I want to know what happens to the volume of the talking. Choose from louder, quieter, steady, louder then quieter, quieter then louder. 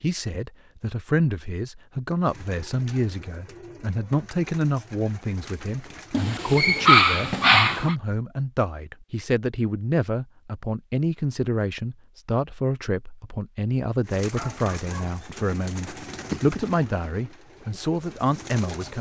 steady.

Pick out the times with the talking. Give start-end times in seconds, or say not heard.
0.0-18.9.